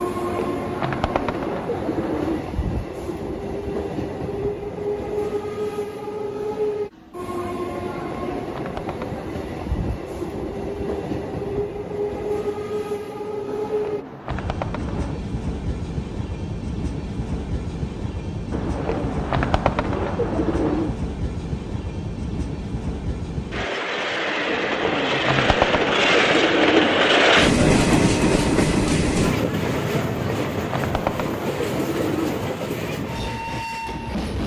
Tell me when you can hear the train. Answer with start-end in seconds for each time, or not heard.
0.0-34.4.